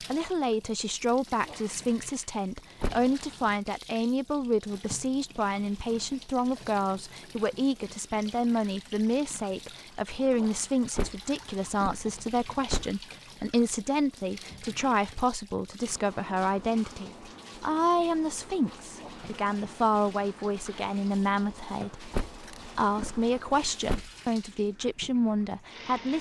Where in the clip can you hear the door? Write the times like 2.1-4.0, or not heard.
2.8-3.5, 10.9-12.9, 22.1-24.1.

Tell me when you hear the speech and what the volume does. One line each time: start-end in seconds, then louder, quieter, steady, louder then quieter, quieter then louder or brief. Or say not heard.
0.0-26.1 steady.